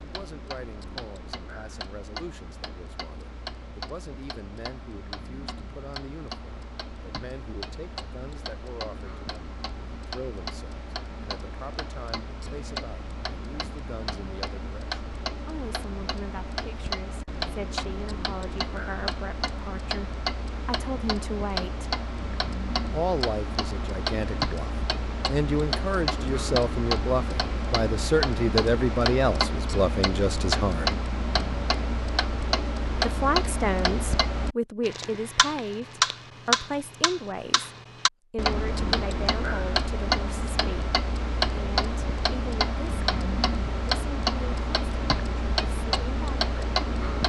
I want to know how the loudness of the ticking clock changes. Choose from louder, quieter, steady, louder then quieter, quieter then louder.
louder.